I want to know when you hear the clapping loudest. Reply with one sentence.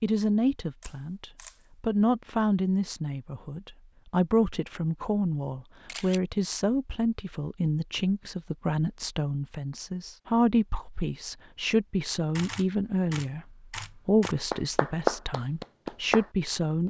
The volume of the clapping peaks at 15 seconds.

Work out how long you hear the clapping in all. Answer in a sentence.
You can hear the clapping for 2 seconds altogether.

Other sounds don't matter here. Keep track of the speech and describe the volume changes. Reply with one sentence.
The volume of the speech stays about the same.